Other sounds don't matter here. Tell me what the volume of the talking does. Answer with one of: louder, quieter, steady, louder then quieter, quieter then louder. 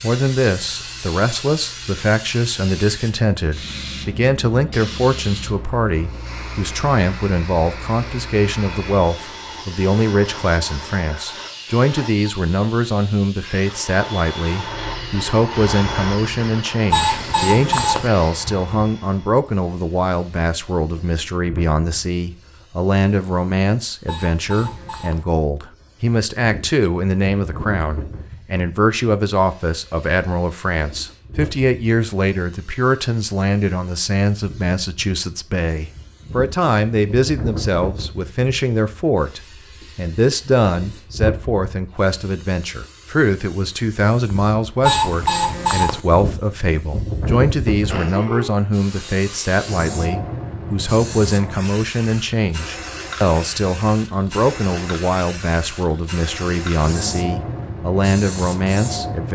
steady.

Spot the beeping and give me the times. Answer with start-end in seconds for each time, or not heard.
16.9-18.1, 24.1-25.2, 44.8-46.0.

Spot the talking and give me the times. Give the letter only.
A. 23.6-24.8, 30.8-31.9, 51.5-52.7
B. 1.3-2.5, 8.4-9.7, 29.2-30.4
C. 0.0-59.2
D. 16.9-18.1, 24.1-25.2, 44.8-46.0
C.